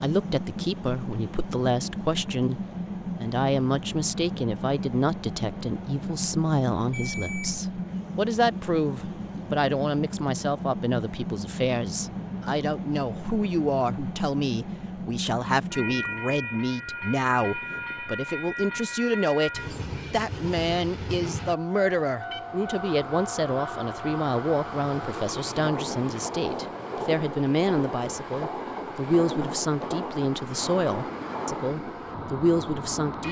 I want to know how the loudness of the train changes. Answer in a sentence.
The loudness of the train stays about the same.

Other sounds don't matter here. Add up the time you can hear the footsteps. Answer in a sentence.
The footsteps can't be heard in this clip.